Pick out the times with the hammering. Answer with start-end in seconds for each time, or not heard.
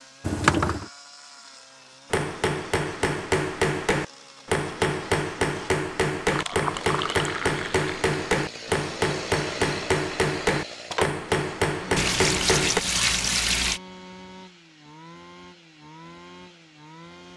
2.1-12.8.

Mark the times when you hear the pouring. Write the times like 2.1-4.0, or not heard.
0.2-0.8, 6.2-7.8, 11.9-13.8.